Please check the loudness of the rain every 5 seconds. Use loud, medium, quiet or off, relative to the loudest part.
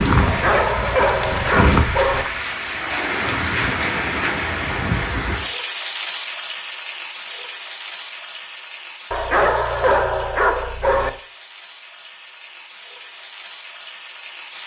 loud, medium, quiet.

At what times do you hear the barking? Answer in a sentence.
You can hear the barking from 0.2 to 2.2 s and from 9.1 to 11.1 s.